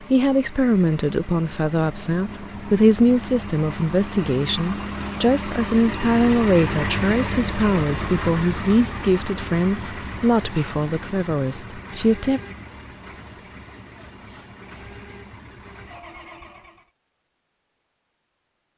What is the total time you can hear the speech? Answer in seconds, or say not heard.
12 s.